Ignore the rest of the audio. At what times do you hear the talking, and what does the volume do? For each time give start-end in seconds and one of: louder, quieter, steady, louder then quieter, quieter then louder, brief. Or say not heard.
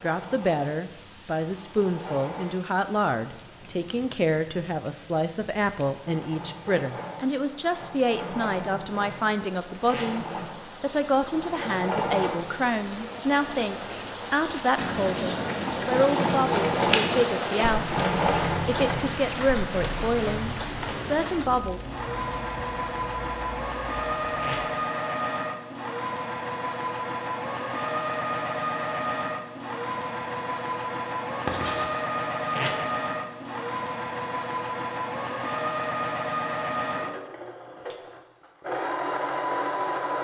0.0-21.8 steady.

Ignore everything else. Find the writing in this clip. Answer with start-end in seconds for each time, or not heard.
14.8-17.2, 31.4-31.9.